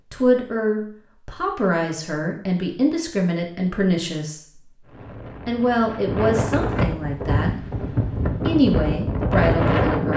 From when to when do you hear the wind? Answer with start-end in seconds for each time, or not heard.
4.8-10.1.